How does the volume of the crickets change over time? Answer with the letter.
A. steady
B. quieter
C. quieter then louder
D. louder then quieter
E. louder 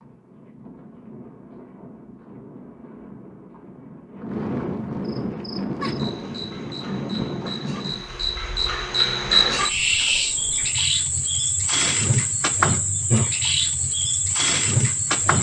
E.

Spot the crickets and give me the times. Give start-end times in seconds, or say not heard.
5.0-15.3.